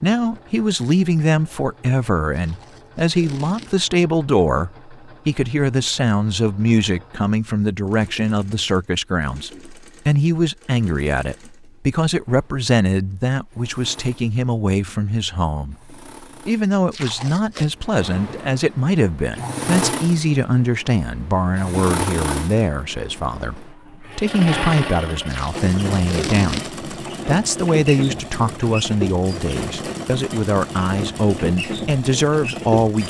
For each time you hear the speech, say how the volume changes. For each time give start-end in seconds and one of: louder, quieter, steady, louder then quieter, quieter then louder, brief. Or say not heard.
0.0-33.0 steady.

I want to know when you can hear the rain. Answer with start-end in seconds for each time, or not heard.
not heard.